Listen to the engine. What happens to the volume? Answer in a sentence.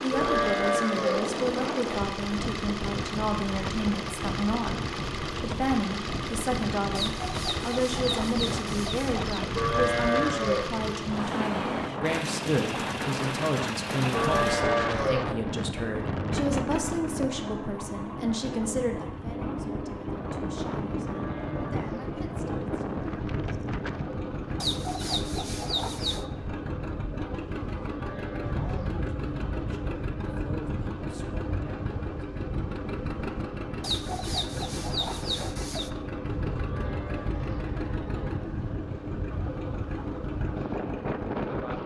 The volume of the engine stays about the same.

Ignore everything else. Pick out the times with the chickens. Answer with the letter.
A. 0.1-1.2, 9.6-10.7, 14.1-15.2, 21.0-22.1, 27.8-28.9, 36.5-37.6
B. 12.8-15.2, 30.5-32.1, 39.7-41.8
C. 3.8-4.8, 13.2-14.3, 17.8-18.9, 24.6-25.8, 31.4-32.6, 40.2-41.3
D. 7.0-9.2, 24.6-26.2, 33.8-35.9
D.